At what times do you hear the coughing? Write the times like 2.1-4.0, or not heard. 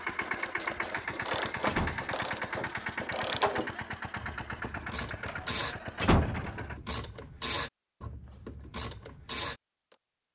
not heard.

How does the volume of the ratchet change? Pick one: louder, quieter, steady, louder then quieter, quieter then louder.
louder.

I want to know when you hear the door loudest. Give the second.
6 s.